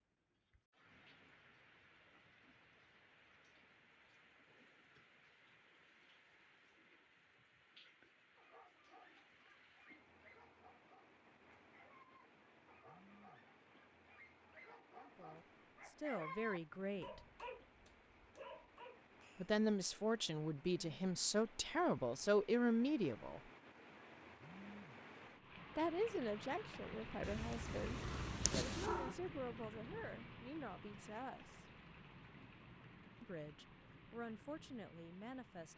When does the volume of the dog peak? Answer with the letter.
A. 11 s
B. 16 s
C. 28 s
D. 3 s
B.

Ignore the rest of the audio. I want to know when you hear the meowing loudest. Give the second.
29 s.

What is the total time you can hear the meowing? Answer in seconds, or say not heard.
2 s.